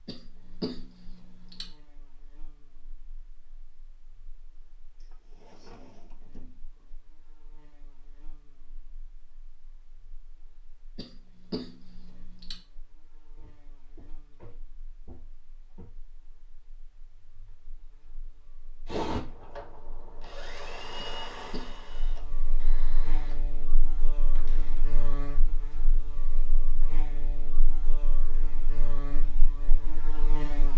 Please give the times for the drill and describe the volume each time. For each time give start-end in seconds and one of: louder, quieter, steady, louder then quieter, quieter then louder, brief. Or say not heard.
18.9-23.4 louder then quieter.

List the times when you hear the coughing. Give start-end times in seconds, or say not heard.
0.1-1.7, 10.9-12.6, 20.9-22.0.